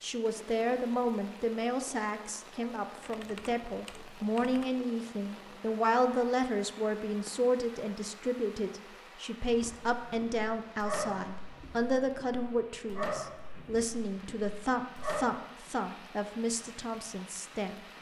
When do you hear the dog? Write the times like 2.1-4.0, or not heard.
9.4-15.2.